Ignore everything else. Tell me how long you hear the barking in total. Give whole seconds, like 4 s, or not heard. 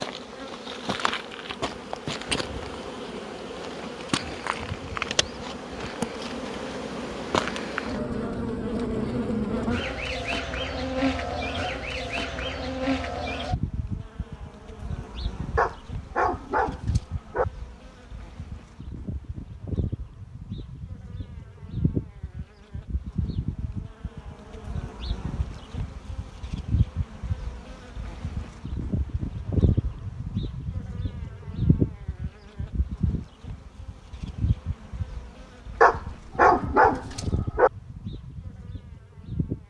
4 s.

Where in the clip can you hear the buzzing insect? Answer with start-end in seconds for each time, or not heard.
0.0-39.6.